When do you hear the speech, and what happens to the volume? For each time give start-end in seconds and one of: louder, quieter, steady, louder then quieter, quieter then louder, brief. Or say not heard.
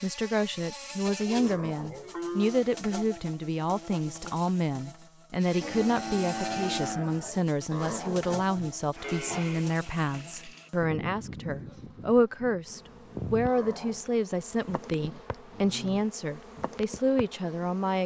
0.0-18.0 steady.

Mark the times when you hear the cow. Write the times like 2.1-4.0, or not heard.
1.1-2.6, 5.6-7.5, 9.0-10.7, 14.9-16.1.